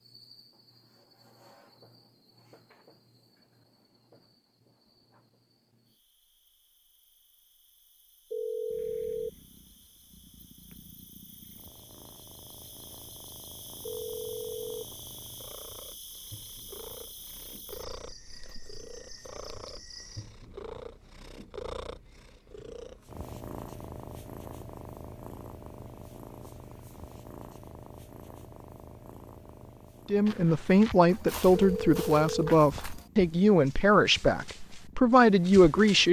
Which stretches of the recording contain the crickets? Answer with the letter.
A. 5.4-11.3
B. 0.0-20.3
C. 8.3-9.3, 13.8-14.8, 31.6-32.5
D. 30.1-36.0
B.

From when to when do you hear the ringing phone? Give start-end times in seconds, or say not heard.
8.3-9.3, 13.8-14.8, 31.6-32.5.